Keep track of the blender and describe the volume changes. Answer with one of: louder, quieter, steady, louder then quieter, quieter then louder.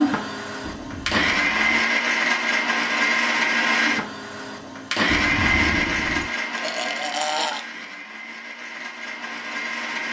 quieter.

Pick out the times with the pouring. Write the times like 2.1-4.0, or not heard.
0.6-1.8, 5.0-6.2.